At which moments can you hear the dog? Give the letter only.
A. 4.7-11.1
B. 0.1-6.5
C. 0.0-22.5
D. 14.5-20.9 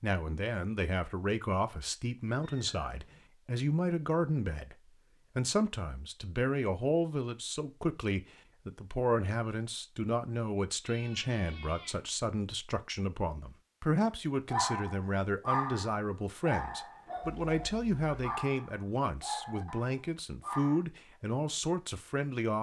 D.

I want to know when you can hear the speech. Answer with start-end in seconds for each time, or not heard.
0.0-22.5.